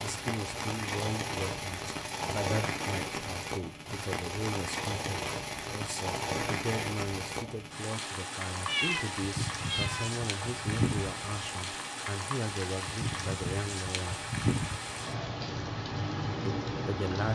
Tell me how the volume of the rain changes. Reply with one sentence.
The loudness of the rain stays about the same.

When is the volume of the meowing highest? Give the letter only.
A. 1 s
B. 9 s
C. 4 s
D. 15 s
B.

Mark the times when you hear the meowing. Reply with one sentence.
The meowing can be heard from 8.7 to 10.1 s.